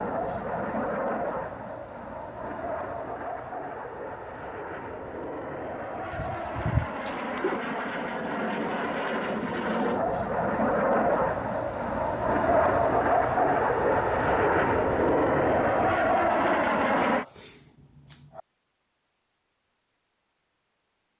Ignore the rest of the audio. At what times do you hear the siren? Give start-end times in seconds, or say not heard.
not heard.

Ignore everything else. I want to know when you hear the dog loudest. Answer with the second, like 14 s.
7 s.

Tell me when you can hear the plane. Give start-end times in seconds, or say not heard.
0.0-17.2.